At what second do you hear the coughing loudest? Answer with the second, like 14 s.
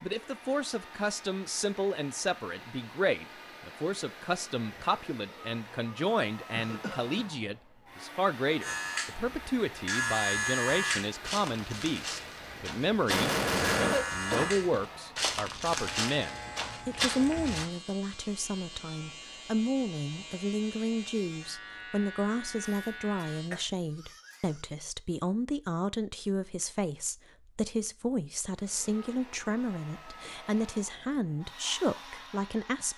14 s.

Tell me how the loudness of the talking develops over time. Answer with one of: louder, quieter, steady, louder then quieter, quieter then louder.
steady.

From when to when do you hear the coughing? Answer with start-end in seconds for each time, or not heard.
6.5-7.1, 13.1-14.5, 22.6-24.6.